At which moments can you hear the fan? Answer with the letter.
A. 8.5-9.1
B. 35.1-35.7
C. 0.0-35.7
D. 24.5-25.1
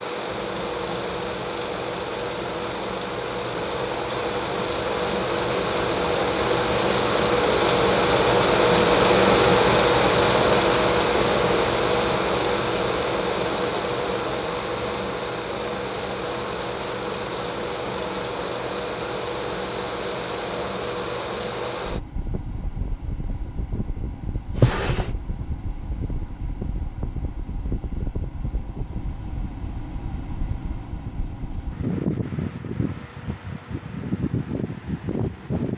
C.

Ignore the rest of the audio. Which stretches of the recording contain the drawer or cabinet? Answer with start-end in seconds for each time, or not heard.
24.5-25.1.